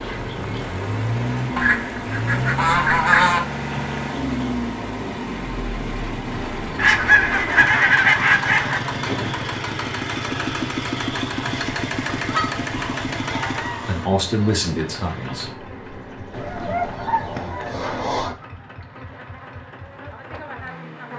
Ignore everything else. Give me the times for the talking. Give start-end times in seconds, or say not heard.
13.7-15.7.